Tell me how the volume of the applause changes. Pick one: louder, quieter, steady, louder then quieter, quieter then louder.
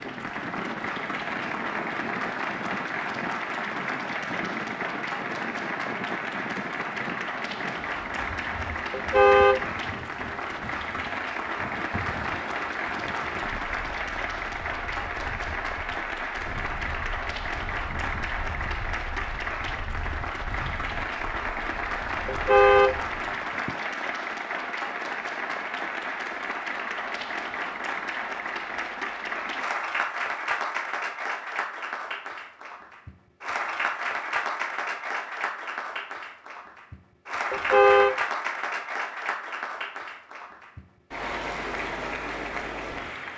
steady.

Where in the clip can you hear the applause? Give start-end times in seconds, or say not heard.
0.0-43.3.